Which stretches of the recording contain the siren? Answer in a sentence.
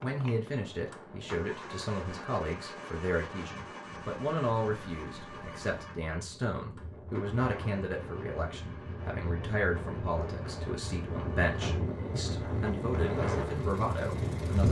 The siren can't be heard in this clip.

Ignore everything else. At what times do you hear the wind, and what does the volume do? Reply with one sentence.
You can hear the wind from 0.0 to 14.6 s, getting louder.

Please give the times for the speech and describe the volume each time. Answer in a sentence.
You can hear the speech from 0.0 to 14.6 s, at a steady volume.